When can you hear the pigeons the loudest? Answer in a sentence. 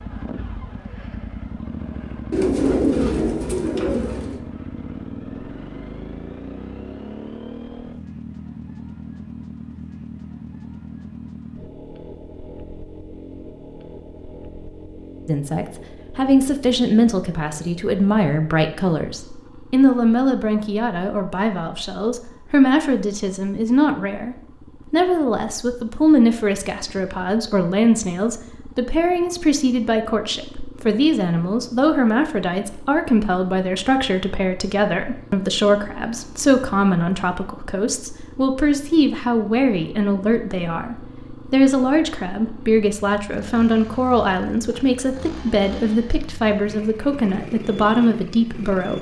The volume of the pigeons peaks at 3 seconds.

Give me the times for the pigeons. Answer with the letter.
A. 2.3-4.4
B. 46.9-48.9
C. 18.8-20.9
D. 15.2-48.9
A.